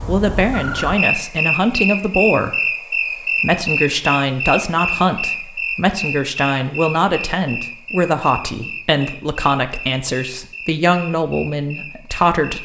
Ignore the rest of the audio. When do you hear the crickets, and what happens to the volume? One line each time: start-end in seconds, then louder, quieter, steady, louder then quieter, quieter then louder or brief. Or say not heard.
0.0-12.6 quieter.